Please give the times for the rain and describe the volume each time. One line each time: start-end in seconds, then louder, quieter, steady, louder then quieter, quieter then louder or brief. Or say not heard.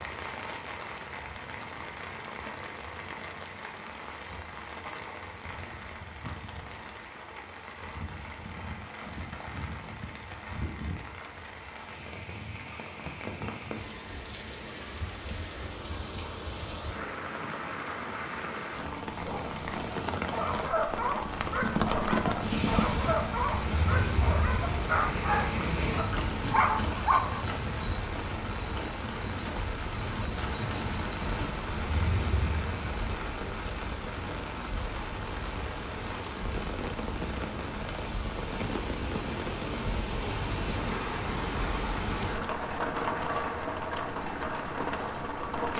0.0-45.7 louder.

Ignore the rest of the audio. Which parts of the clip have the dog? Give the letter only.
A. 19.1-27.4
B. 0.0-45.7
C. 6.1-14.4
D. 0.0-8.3
A.